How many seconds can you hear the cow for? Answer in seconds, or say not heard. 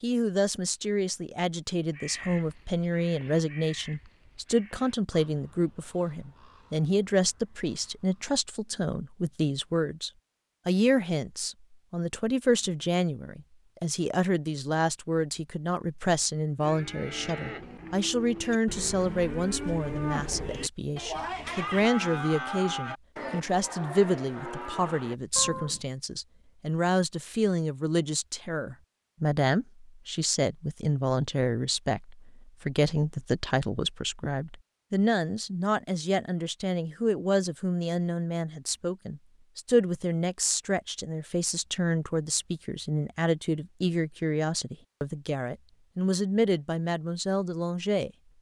9 s.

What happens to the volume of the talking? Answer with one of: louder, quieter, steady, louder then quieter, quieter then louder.
steady.